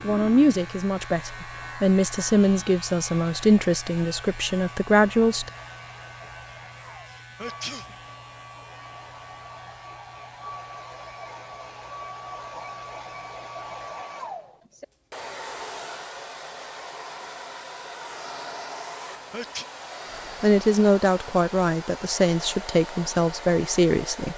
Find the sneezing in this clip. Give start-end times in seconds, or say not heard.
7.0-7.8, 19.1-19.6.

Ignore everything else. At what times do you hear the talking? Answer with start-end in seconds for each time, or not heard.
0.0-5.5, 20.4-24.3.